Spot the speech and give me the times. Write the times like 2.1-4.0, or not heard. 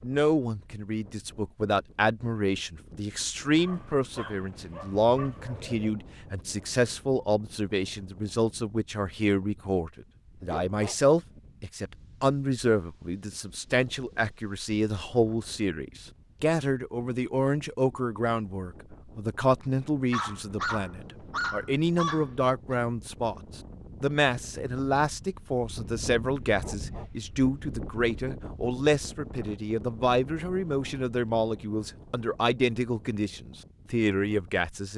0.0-34.9.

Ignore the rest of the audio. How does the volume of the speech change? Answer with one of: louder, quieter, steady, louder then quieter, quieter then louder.
steady.